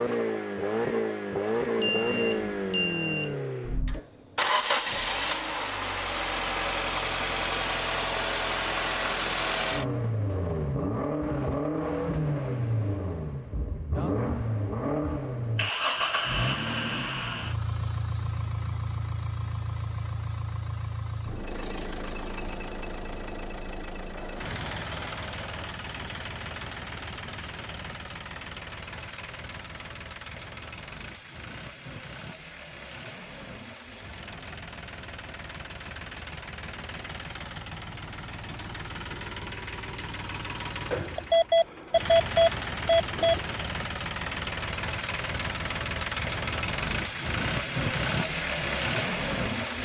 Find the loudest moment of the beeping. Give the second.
42 s.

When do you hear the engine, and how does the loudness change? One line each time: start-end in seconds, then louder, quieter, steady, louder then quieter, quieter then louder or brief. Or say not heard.
0.0-49.8 quieter then louder.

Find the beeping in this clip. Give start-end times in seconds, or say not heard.
1.8-3.4, 24.1-25.6, 40.9-43.5.